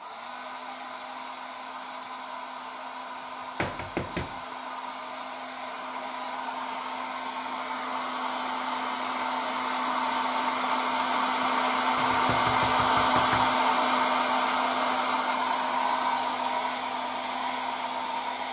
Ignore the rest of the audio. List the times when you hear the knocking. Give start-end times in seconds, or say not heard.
3.1-4.5, 11.9-13.6.